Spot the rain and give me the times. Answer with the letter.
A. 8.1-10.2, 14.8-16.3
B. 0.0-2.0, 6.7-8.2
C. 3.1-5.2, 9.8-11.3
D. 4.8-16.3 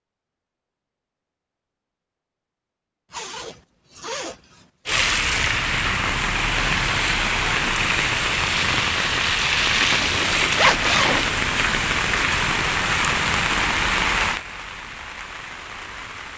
D.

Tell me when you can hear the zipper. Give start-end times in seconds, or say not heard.
3.1-5.2, 9.8-11.3.